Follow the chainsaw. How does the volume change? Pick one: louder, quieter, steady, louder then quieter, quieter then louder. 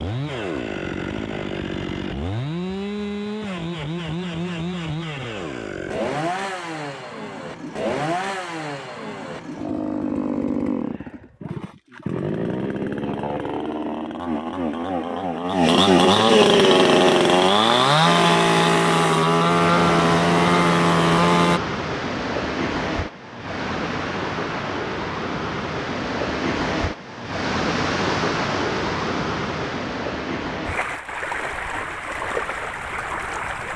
louder.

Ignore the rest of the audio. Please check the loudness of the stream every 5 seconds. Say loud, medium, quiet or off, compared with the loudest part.
off, off, off, loud, loud, loud, loud.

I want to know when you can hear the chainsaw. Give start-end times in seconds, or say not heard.
0.0-21.6.